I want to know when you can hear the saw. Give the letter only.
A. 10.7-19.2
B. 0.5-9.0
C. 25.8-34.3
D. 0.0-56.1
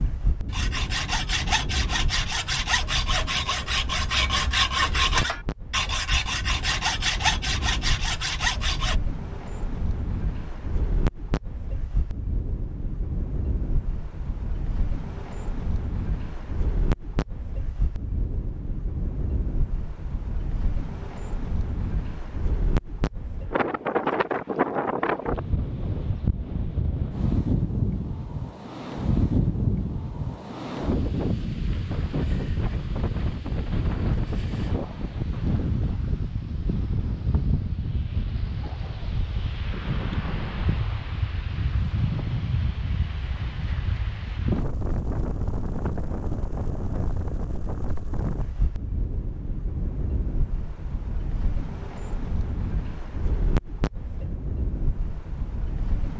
B.